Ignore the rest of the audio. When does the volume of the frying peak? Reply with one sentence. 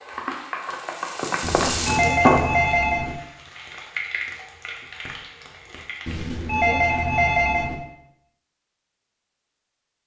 The loudest moment of the frying is at 2 seconds.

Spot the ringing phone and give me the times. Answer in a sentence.
You can hear the ringing phone from 1.4 to 3.1 s and from 6.0 to 7.8 s.